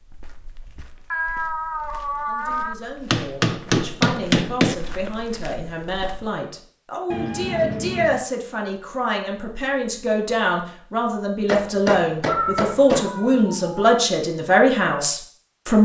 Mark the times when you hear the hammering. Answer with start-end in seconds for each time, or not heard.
3.1-4.8, 11.4-13.1.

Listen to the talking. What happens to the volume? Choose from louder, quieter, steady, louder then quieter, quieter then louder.
louder.